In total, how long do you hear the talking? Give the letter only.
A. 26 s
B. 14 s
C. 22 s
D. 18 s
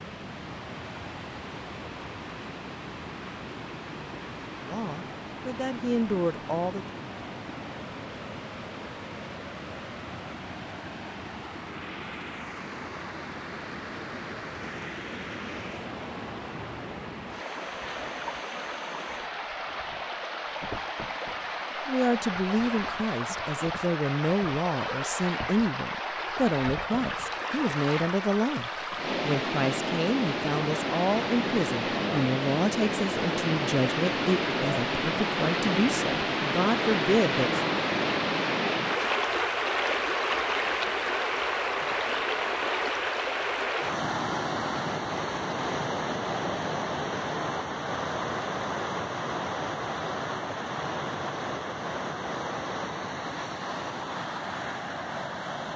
D.